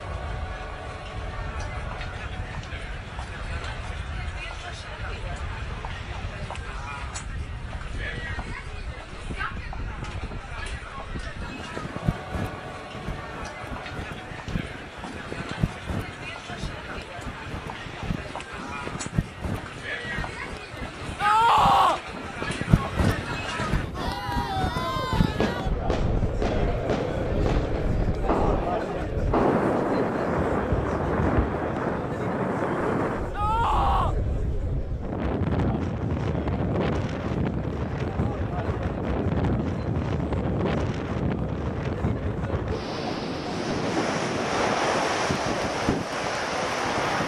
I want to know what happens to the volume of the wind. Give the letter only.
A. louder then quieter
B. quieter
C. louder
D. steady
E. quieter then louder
C.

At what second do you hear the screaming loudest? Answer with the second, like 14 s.
22 s.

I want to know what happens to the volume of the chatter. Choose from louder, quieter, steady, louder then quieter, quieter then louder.
louder then quieter.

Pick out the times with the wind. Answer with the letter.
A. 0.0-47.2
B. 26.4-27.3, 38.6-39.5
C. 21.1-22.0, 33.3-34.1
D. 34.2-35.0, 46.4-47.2
A.